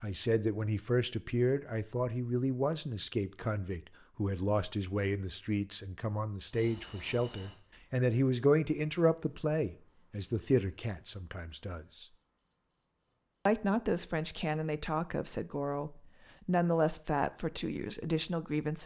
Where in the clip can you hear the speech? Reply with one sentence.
You can hear the speech from 0.0 to 12.1 s and from 13.4 to 18.8 s.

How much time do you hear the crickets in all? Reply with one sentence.
The crickets can be heard for 12 seconds in total.